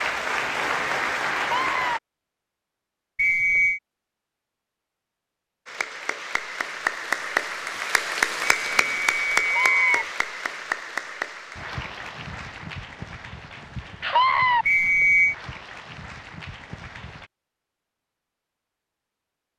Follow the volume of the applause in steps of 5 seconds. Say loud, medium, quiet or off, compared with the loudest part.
loud, loud, medium, quiet.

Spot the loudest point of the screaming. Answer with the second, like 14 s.
14 s.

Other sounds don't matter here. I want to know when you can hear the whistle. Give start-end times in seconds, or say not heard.
3.1-3.8, 8.4-10.1, 14.7-15.3.